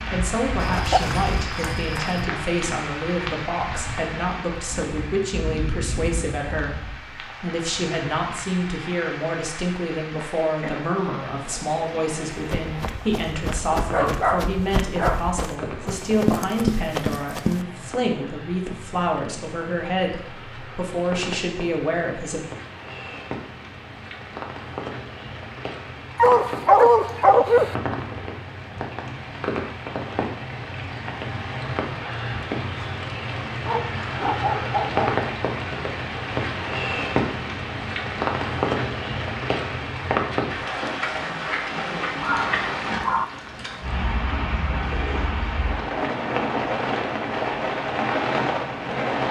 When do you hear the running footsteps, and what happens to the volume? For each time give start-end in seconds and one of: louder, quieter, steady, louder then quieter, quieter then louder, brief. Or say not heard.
12.3-17.6 louder.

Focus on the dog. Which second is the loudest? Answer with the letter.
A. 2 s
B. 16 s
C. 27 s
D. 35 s
C.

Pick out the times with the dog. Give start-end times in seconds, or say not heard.
0.6-2.2, 13.7-16.1, 26.1-27.8, 33.6-35.1, 42.1-43.2.